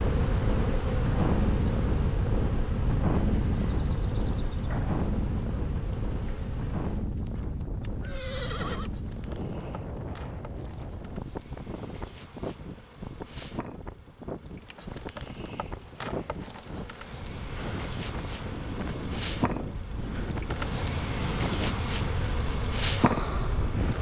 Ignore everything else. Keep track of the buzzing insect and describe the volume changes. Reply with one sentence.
The loudness of the buzzing insect goes down, then up.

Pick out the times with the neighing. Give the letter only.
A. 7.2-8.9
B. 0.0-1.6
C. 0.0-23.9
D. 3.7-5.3
A.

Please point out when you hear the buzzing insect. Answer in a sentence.
You can hear the buzzing insect from 0.0 to 23.9 s.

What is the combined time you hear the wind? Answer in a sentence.
You can hear the wind for 24 seconds altogether.